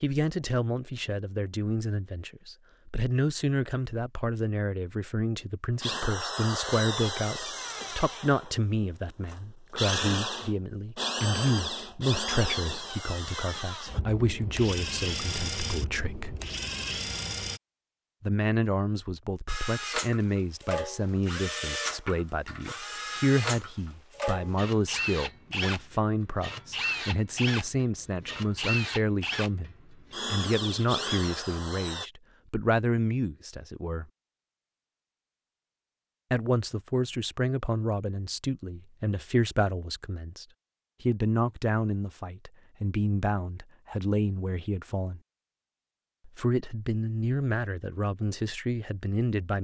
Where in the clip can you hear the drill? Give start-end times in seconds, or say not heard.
5.8-17.6, 19.4-32.1.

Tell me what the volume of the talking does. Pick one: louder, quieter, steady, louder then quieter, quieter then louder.
steady.